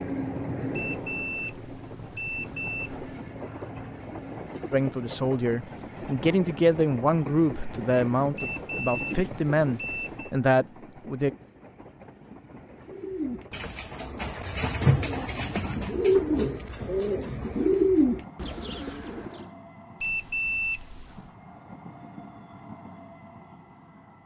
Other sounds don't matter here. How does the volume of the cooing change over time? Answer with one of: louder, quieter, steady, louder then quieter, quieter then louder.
louder.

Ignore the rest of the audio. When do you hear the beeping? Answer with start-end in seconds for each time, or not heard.
0.7-3.1, 8.3-10.3, 20.0-21.3.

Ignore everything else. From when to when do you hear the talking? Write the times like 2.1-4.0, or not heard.
4.7-11.3.